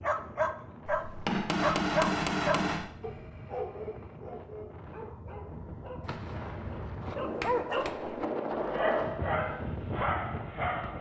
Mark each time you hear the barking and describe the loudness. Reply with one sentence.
You can hear the barking from 0.0 to 10.9 s, getting quieter then louder.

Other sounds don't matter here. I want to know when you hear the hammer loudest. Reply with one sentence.
The loudest moment of the hammer is at 2 seconds.